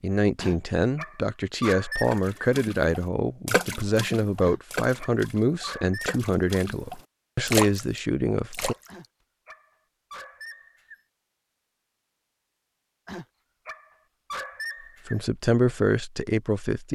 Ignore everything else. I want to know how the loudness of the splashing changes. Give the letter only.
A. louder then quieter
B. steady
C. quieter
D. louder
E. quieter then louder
E.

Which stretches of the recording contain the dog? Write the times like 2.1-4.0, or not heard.
0.3-2.2, 4.4-6.2, 8.8-11.0, 13.1-15.2.